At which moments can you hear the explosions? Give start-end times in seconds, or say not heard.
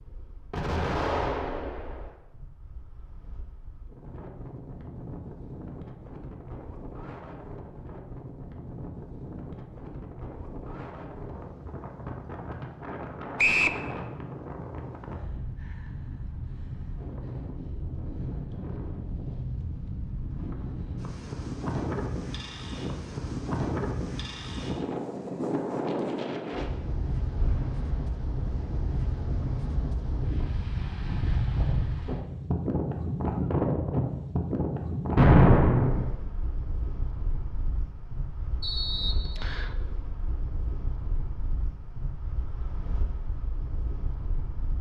0.5-2.0, 27.4-28.1, 35.1-36.1.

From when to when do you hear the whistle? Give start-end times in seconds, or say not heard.
13.3-13.8, 38.6-39.7.